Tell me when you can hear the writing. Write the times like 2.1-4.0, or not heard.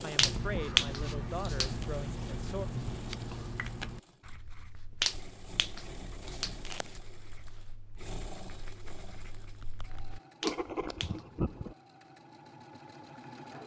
0.1-11.8.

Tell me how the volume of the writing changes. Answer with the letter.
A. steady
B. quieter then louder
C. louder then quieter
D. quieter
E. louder
B.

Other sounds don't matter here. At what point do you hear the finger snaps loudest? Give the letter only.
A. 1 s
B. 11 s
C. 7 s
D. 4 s
A.